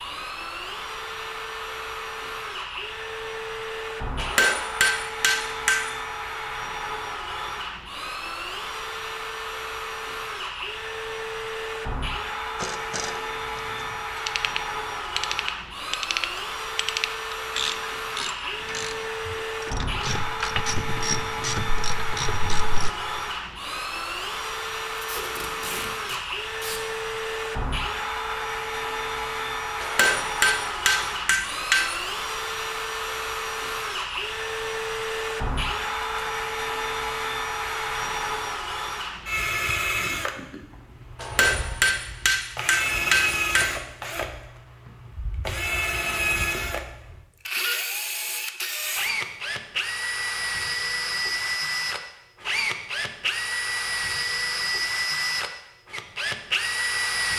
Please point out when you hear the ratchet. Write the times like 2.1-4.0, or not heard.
12.6-22.9.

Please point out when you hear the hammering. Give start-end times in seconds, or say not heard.
4.2-5.9, 29.8-31.9, 41.1-43.7.